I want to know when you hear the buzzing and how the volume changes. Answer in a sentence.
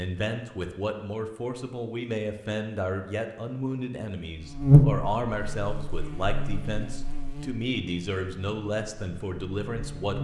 You can hear the buzzing from 4.4 to 10.1 s, getting quieter.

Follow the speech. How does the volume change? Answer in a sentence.
The loudness of the speech stays about the same.